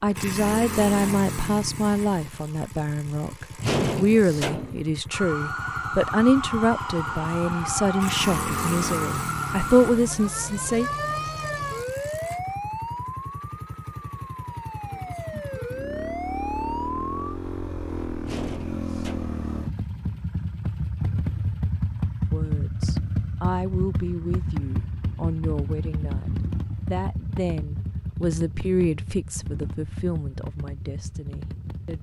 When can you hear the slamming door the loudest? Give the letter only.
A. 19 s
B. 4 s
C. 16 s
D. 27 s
B.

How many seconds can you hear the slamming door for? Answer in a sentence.
The slamming door can be heard for 2 seconds in total.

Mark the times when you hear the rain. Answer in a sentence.
The rain can't be heard in this clip.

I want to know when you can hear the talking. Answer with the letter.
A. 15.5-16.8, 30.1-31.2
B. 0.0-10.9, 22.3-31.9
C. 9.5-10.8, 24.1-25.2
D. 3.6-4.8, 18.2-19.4
B.